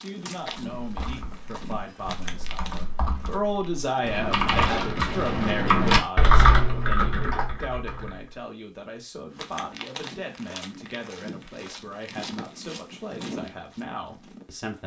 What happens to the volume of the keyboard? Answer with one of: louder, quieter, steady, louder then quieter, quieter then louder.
louder then quieter.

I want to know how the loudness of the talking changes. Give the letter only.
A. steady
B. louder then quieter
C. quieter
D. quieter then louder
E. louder
B.